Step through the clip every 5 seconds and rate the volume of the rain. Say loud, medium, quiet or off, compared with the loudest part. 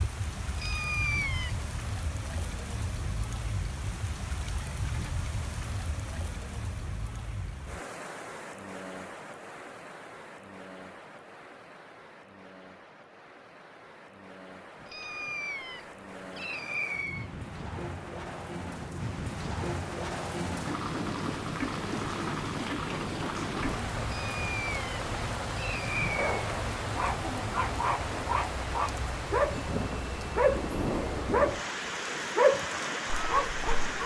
medium, medium, quiet, medium, loud, loud, loud.